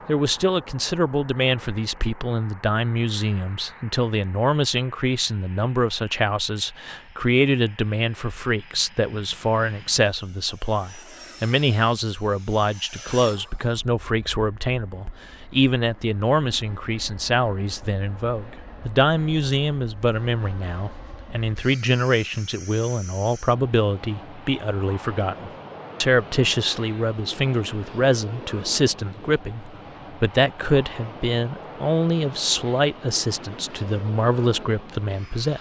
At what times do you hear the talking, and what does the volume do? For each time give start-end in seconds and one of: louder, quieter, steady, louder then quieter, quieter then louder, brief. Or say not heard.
0.1-35.5 steady.